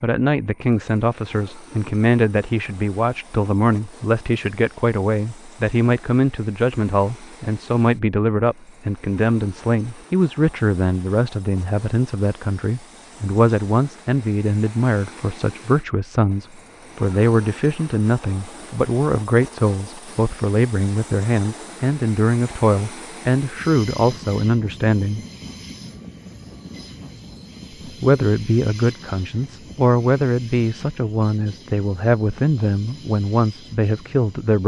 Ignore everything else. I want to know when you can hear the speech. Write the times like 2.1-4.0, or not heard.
0.0-25.2, 27.9-34.6.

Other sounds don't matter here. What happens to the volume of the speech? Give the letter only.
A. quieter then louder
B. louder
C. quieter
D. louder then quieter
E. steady
E.